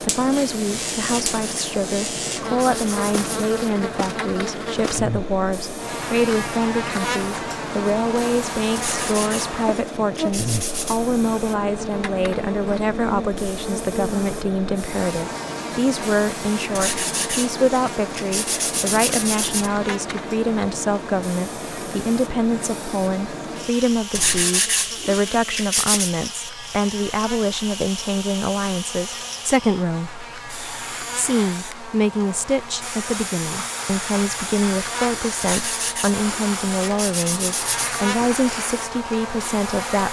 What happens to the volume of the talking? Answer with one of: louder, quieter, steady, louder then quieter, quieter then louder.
steady.